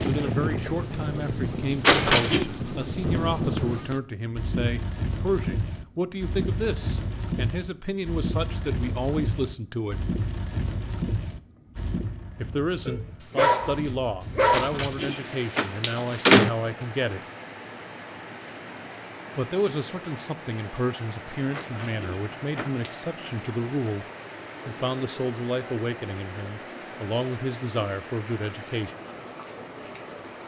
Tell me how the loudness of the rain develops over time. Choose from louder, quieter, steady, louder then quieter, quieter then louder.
quieter.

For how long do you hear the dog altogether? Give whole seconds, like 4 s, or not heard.
2 s.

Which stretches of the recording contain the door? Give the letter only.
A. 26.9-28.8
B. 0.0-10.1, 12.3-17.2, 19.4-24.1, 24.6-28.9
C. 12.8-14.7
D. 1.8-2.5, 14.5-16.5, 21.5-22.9
D.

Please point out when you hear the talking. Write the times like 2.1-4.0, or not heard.
0.0-10.1, 12.3-17.2, 19.4-24.1, 24.6-28.9.